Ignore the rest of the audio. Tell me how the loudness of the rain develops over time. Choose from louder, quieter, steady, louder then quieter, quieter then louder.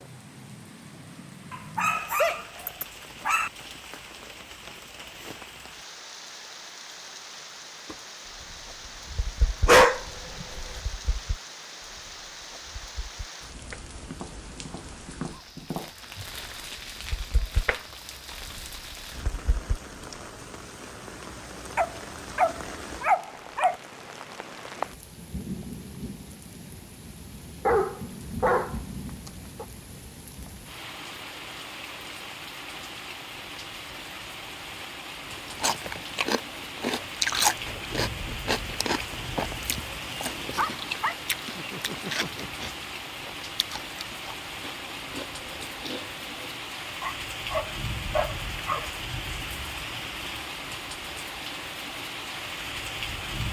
louder.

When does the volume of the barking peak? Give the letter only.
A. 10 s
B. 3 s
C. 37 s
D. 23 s
A.